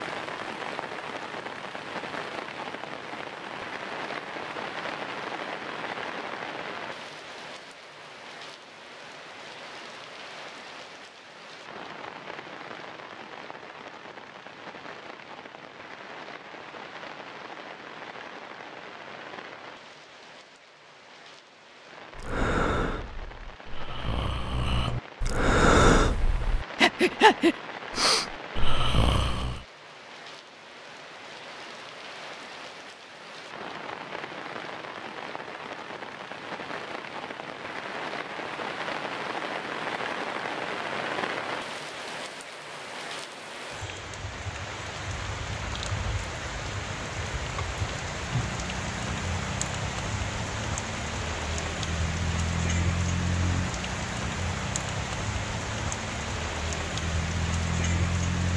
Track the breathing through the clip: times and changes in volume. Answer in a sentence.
The breathing can be heard from 22.1 to 29.6 s, getting louder then quieter.